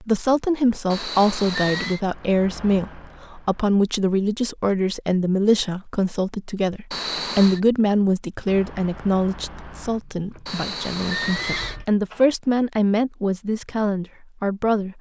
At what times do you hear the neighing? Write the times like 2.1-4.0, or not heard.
0.9-2.0, 6.9-7.6, 10.4-11.8.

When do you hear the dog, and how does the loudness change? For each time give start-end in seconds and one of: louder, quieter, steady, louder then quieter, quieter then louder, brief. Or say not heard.
not heard.